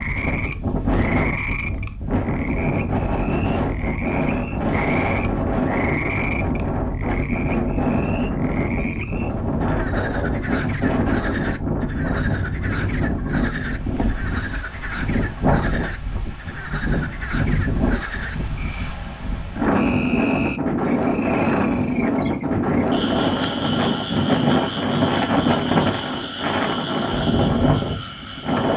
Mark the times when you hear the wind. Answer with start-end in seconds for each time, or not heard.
0.0-28.7.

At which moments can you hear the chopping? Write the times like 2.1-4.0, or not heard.
not heard.